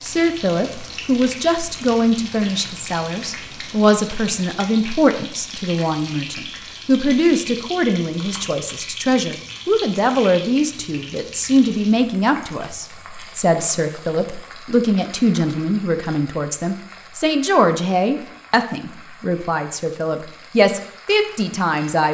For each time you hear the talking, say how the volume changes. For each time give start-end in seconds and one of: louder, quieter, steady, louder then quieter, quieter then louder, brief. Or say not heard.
0.0-22.0 steady.